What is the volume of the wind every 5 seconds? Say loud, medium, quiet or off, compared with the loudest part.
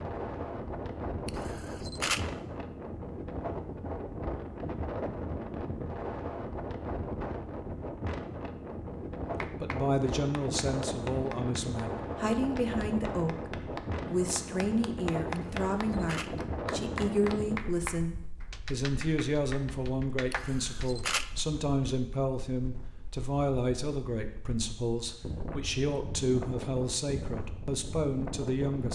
loud, loud, loud, loud, quiet, loud.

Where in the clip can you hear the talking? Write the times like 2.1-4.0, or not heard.
9.6-28.9.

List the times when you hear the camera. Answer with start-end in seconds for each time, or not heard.
1.2-2.2, 15.3-16.3, 20.3-21.2.